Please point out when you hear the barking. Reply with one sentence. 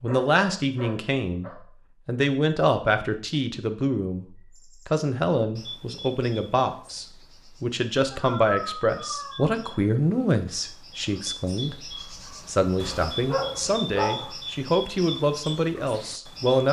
You can hear the barking from 0.1 to 1.6 s, from 8.1 to 9.6 s and from 12.8 to 14.3 s.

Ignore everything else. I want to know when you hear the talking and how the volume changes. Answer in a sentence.
The talking can be heard from 0.0 to 16.6 s, at a steady volume.